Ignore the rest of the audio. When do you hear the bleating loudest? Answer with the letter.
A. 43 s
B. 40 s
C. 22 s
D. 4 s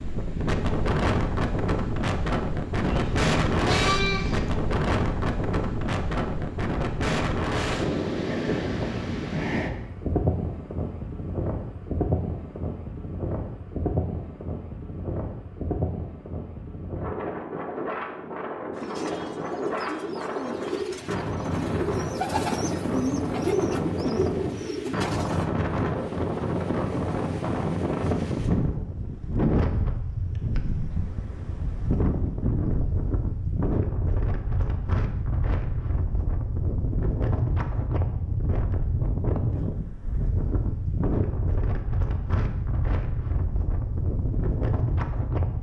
D.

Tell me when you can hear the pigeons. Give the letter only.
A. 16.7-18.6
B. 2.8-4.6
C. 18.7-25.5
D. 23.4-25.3
C.